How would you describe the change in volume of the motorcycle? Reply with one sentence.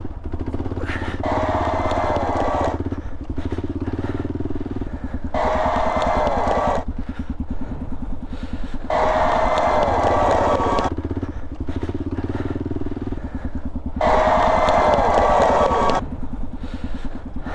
The loudness of the motorcycle stays about the same.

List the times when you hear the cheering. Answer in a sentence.
The cheering can be heard from 1.2 to 2.8 s, from 5.3 to 6.8 s, from 8.9 to 10.9 s and from 14.0 to 16.0 s.